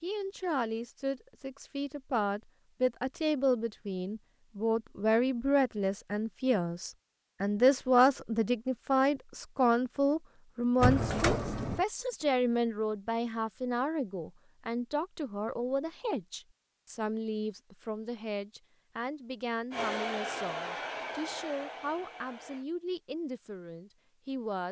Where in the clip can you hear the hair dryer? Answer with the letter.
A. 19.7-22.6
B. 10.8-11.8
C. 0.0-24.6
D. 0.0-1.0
A.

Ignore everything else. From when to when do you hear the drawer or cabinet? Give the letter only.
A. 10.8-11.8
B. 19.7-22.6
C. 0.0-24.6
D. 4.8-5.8
A.